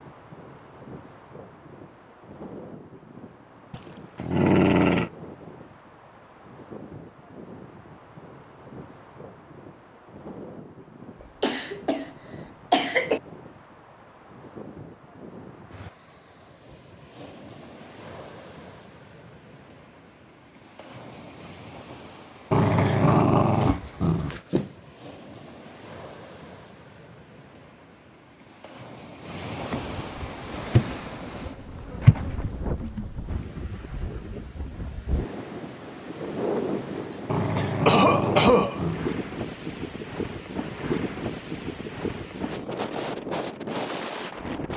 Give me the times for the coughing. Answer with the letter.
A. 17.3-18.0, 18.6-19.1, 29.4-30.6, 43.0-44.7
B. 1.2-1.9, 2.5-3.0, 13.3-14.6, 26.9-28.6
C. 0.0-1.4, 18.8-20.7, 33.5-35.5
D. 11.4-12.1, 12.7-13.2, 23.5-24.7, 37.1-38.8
D.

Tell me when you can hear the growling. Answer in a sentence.
You can hear the growling from 3.7 to 5.1 s, from 22.5 to 24.4 s and from 37.2 to 39.1 s.